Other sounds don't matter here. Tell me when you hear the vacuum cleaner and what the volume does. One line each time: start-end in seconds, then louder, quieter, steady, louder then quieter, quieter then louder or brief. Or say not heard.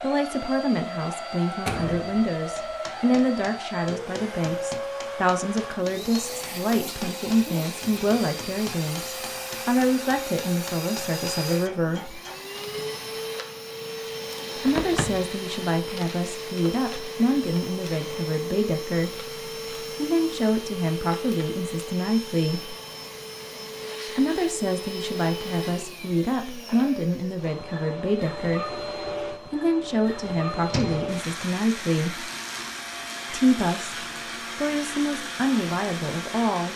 0.0-36.7 steady.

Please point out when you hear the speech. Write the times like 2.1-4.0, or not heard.
0.0-12.2, 14.6-22.8, 24.1-32.3, 33.3-36.7.